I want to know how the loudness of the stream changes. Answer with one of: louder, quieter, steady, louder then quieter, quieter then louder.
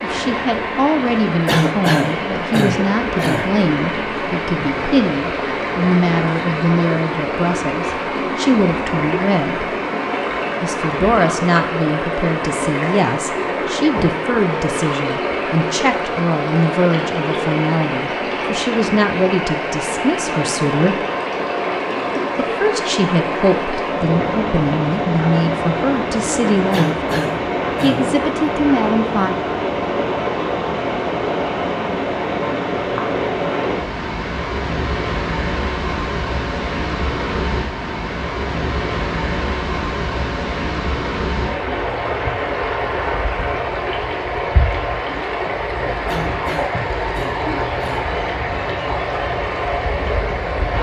steady.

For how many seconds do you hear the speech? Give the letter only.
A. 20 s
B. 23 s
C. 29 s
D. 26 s
D.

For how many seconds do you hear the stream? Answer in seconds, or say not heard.
51 s.